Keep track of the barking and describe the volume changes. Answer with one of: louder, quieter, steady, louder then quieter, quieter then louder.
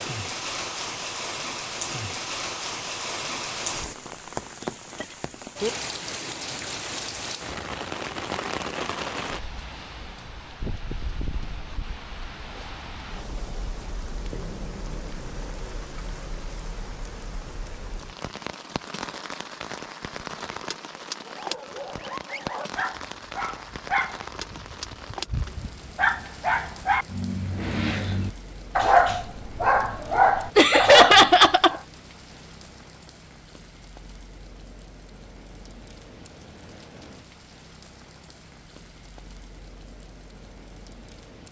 louder.